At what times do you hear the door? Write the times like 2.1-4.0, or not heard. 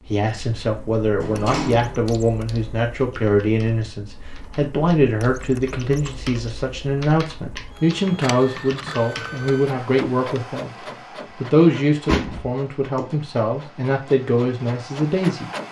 1.2-2.0, 11.6-13.1.